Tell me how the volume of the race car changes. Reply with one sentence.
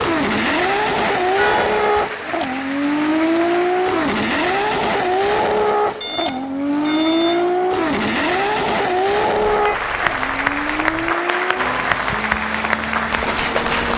The loudness of the race car goes down.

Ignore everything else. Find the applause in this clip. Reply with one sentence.
You can hear the applause from 0.0 to 4.1 s and from 9.4 to 13.9 s.